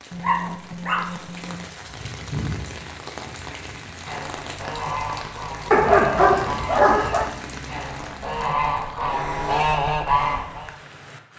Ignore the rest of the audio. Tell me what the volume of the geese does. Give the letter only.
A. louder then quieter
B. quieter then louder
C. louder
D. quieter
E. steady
C.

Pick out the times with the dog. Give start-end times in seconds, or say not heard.
0.1-1.6, 5.7-7.3.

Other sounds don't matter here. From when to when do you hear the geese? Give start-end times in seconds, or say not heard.
1.7-10.8.